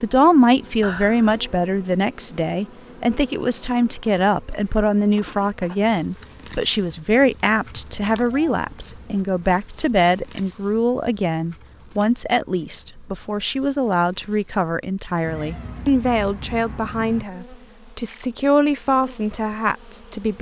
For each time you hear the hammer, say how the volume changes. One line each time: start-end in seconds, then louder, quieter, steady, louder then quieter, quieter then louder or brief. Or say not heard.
not heard.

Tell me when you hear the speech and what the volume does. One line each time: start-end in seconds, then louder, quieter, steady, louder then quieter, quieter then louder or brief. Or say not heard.
0.0-20.3 steady.